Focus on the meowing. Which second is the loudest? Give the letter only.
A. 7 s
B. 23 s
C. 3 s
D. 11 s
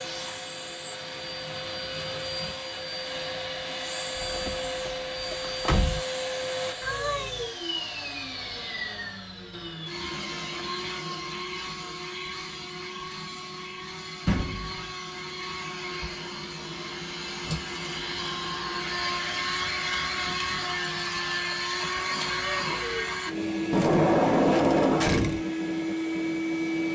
A.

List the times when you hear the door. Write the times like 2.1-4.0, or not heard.
4.2-6.0, 14.2-14.9, 23.7-25.4.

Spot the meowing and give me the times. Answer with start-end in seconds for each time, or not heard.
6.8-7.5, 22.2-23.1.